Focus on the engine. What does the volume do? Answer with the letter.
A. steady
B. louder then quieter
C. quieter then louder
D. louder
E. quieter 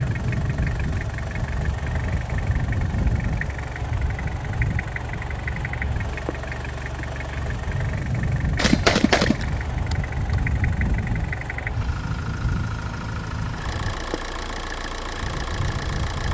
A.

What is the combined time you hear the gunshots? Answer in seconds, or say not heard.
2 s.